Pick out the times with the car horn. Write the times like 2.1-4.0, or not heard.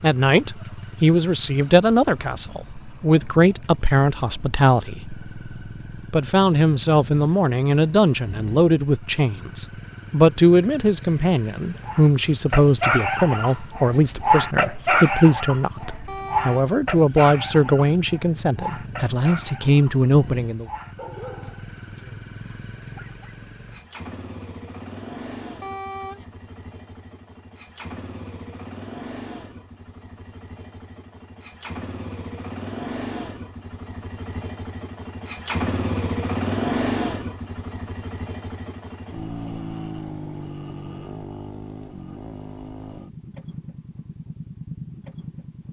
16.1-16.7, 25.6-26.2.